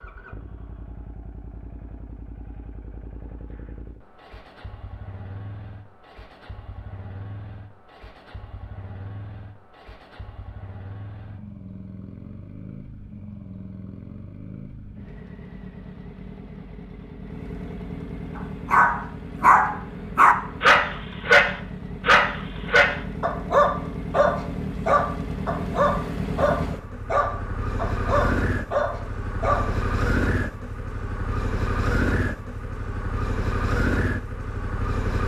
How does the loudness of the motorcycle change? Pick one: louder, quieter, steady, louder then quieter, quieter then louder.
louder.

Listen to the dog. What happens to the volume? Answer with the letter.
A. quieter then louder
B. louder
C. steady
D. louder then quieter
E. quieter
E.